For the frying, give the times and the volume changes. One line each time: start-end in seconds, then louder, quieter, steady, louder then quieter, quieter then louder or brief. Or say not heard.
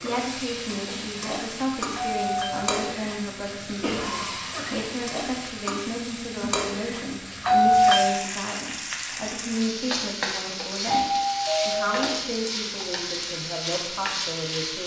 0.0-14.8 steady.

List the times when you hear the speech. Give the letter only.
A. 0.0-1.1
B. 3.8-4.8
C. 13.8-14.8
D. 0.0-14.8
D.